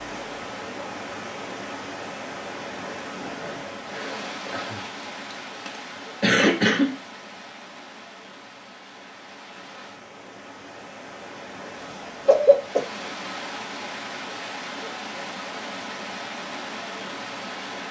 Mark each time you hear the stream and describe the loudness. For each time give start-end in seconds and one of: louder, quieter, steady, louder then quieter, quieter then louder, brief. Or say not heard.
0.0-17.8 quieter then louder.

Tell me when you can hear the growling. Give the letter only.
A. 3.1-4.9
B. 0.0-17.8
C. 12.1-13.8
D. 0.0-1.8
A.